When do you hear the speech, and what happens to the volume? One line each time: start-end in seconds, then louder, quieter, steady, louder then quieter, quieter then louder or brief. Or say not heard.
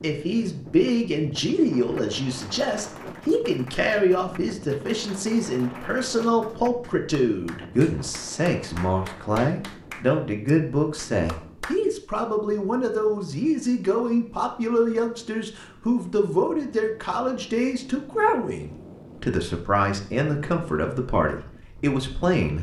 0.0-22.5 steady.